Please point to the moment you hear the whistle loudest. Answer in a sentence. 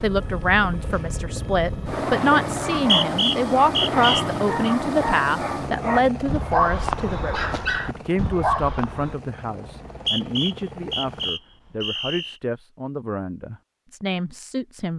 The loudest moment of the whistle is at 3 seconds.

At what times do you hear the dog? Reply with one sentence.
You can hear the dog from 1.9 to 9.2 s.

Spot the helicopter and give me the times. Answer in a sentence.
The helicopter can be heard from 0.0 to 11.3 s.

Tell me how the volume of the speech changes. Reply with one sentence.
The volume of the speech goes down.